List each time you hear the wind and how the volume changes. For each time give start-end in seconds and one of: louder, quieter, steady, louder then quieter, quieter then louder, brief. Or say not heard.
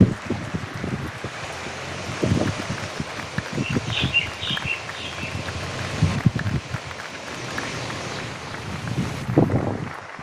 0.0-10.1 louder.